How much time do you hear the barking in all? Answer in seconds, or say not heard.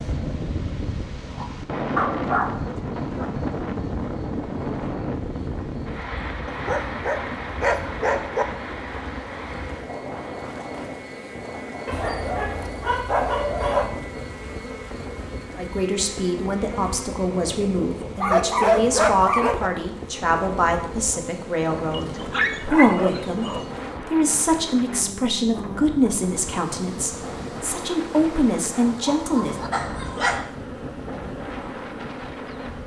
10 s.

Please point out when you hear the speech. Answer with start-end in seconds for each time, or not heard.
15.6-29.6.